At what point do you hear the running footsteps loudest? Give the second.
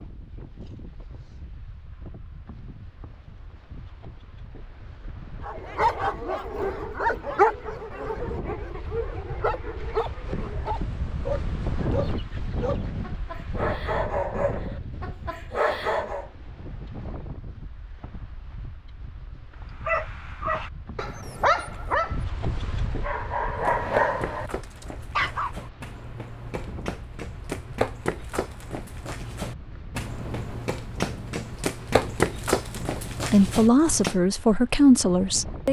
32 s.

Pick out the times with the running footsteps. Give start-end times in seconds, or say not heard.
23.5-34.1.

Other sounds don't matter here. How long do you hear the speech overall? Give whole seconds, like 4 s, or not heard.
2 s.